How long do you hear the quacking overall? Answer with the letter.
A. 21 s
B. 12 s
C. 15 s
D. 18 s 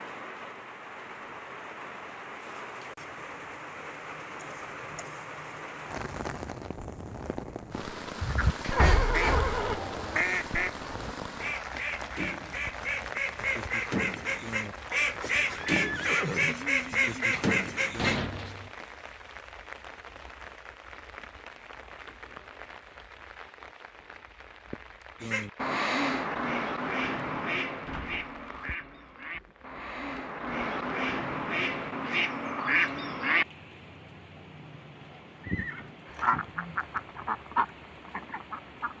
A.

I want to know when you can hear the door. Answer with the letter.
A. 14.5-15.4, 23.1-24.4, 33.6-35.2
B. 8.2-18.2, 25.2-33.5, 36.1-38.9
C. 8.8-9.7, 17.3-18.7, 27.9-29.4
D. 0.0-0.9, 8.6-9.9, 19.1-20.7
C.